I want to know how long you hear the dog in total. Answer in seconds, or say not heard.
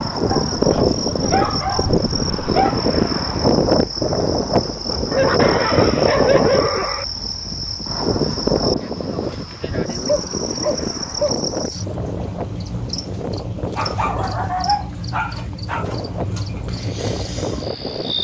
8 s.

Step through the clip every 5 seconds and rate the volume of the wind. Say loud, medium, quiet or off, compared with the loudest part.
loud, loud, medium, medium.